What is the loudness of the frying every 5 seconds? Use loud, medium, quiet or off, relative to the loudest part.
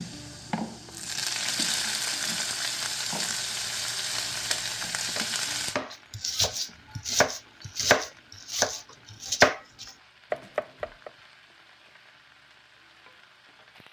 loud, medium, quiet.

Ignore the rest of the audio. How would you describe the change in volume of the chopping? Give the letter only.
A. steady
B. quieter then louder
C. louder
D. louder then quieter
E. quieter
D.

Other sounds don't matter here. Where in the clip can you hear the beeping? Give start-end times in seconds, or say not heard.
not heard.